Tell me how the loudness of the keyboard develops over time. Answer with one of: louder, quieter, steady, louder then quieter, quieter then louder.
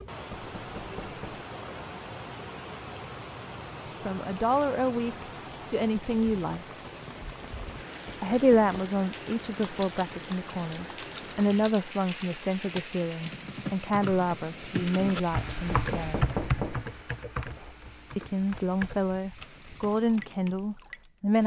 louder then quieter.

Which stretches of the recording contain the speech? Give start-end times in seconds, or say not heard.
3.9-6.7, 8.2-16.3, 18.1-21.4.